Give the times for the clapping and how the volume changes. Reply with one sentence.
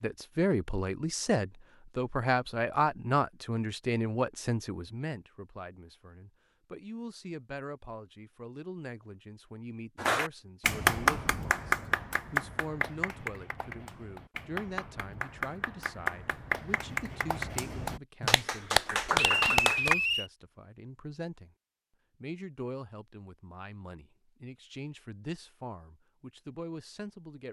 You can hear the clapping from 9.9 to 19.9 s, getting quieter then louder.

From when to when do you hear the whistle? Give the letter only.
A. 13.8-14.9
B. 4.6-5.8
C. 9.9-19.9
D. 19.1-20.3
D.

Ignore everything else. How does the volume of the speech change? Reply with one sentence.
The loudness of the speech goes down.